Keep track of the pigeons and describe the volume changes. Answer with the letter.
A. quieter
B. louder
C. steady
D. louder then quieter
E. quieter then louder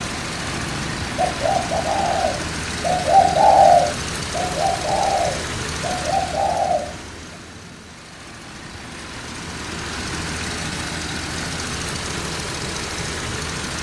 D.